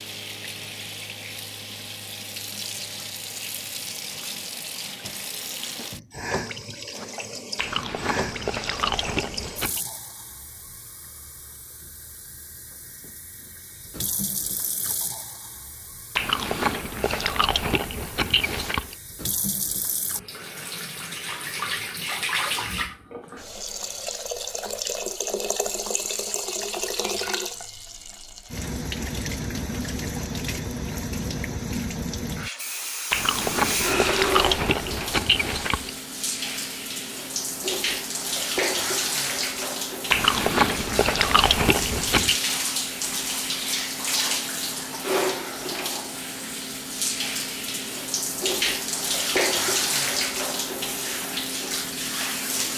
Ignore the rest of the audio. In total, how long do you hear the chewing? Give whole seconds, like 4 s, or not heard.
10 s.